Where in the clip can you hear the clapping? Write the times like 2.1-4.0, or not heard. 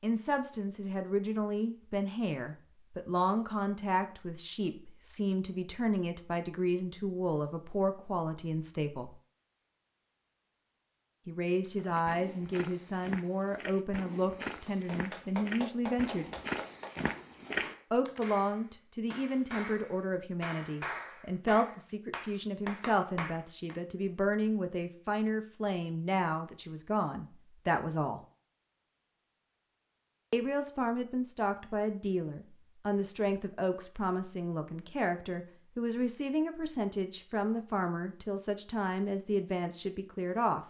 14.7-23.8.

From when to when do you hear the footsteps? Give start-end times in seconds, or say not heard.
11.7-18.2.